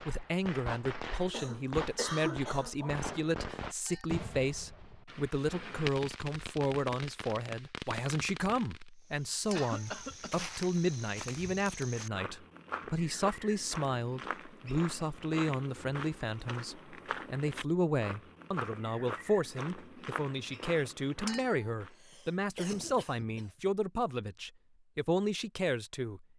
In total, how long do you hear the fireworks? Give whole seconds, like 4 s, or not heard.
9 s.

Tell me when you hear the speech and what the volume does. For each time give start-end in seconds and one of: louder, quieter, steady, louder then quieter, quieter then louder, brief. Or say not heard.
0.1-26.2 steady.